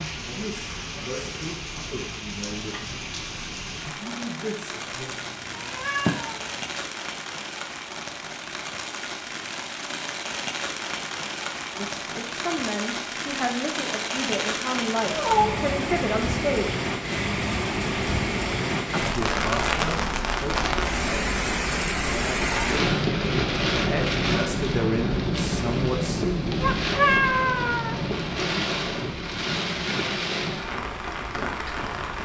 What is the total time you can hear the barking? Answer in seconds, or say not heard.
not heard.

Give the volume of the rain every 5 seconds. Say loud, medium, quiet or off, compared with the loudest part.
medium, medium, medium, loud, loud, loud, medium.